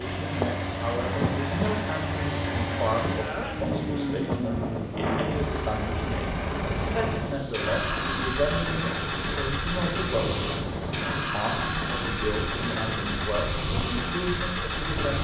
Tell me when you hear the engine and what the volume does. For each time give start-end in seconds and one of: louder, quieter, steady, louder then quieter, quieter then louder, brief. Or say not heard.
0.0-15.1 steady.